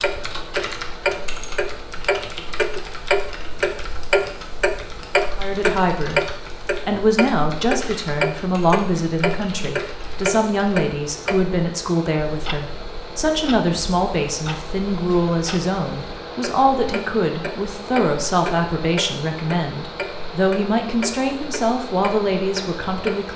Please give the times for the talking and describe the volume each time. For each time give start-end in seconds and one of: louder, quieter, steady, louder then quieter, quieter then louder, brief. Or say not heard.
5.3-6.2 brief
6.8-23.3 steady.